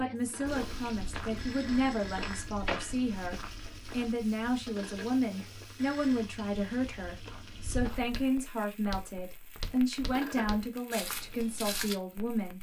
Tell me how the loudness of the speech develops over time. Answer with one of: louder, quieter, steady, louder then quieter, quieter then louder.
steady.